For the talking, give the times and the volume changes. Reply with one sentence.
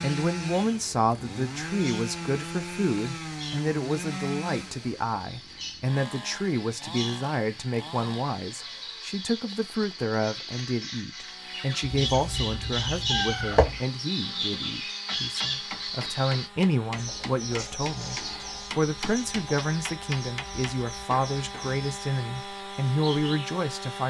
The talking can be heard from 0.0 to 24.0 s, at a steady volume.